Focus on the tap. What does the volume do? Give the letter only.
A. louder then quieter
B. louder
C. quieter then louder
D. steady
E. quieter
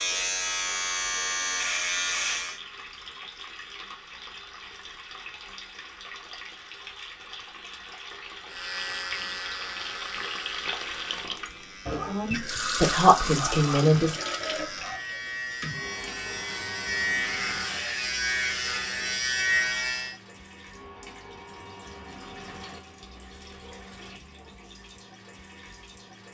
A.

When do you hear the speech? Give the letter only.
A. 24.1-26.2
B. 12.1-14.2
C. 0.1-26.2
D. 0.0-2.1
B.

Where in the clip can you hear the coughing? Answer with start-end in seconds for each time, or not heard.
not heard.